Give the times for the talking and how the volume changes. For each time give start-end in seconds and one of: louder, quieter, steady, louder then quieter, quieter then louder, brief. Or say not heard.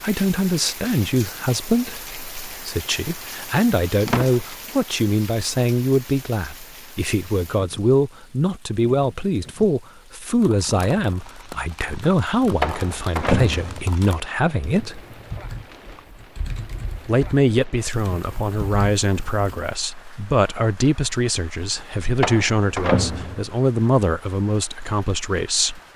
0.0-15.0 steady
17.1-25.8 steady.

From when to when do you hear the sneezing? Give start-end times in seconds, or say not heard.
not heard.